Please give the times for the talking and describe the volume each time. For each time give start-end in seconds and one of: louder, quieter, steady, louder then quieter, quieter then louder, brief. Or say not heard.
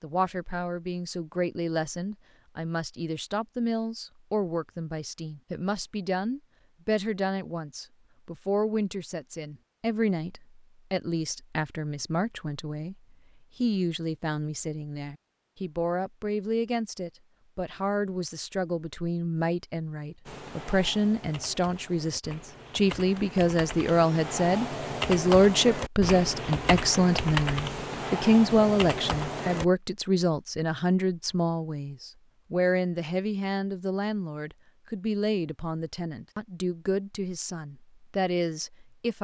0.0-39.1 louder then quieter.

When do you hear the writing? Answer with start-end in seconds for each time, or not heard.
not heard.